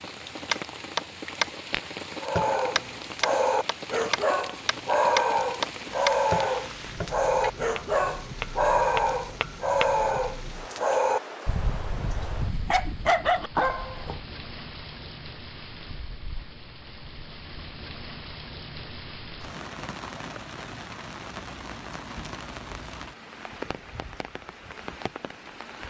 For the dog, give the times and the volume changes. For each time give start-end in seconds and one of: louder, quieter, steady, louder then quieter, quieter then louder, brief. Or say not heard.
2.2-14.2 steady.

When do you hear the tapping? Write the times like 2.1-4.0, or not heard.
0.5-9.9.